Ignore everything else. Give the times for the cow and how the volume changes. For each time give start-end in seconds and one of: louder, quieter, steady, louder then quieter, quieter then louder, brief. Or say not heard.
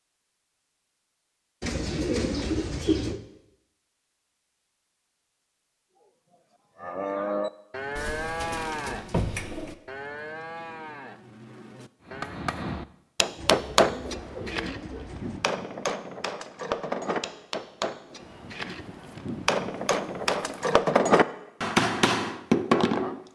6.0-12.4 quieter.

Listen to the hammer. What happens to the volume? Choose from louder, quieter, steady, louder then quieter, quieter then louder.
quieter then louder.